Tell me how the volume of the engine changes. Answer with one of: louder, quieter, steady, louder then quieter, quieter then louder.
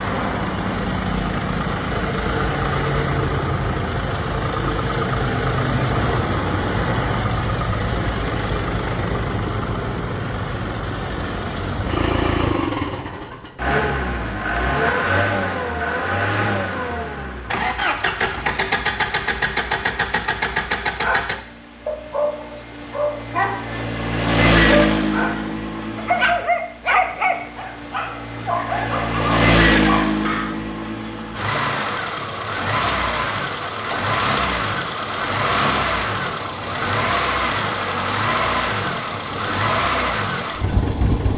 steady.